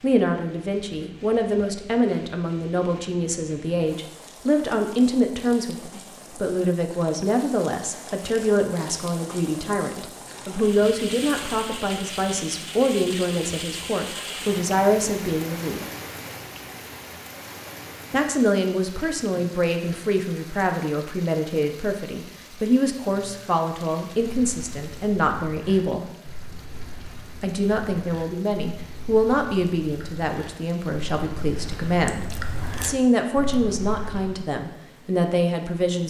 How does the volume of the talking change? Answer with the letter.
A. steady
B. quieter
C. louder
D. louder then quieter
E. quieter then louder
A.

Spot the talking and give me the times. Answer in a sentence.
The talking can be heard from 0.0 to 15.8 s, from 18.1 to 26.1 s and from 27.4 to 36.0 s.